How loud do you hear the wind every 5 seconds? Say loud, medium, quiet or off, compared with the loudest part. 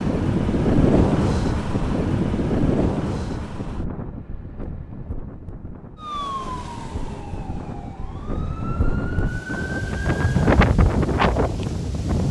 loud, medium, loud.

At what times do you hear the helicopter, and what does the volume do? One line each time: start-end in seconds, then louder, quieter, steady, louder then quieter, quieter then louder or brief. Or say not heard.
not heard.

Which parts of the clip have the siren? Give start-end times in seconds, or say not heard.
6.0-10.5.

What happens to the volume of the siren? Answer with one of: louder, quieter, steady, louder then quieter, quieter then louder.
quieter then louder.